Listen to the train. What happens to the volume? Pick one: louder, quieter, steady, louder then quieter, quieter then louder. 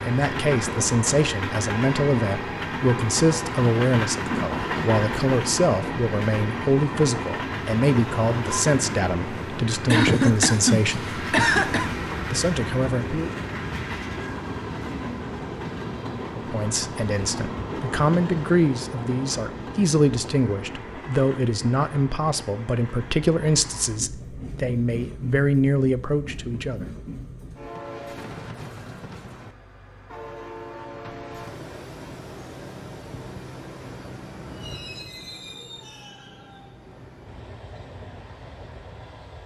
quieter.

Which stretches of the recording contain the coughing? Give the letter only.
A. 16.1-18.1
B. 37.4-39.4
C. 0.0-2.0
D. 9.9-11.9
D.